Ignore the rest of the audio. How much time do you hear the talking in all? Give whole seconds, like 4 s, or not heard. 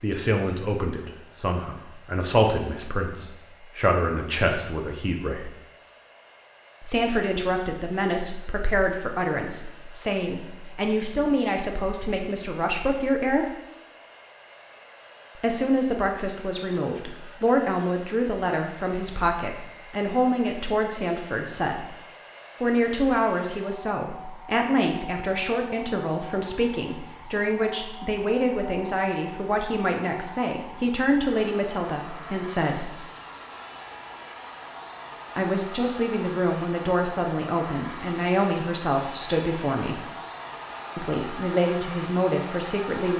36 s.